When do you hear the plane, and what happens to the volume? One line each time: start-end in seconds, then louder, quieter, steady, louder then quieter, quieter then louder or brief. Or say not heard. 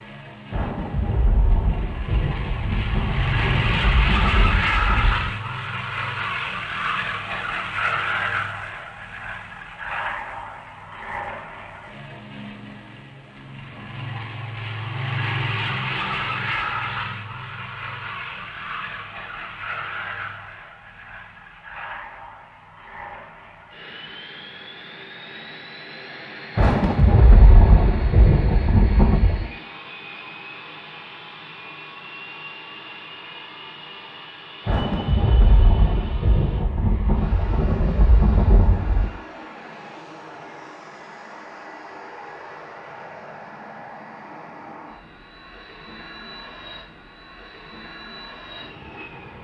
0.0-49.4 quieter.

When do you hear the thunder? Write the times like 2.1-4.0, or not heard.
0.5-5.3, 26.6-29.5, 34.6-39.1.